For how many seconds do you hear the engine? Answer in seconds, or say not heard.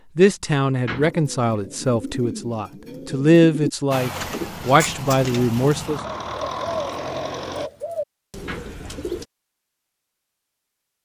4 s.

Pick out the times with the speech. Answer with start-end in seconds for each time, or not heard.
0.1-6.0.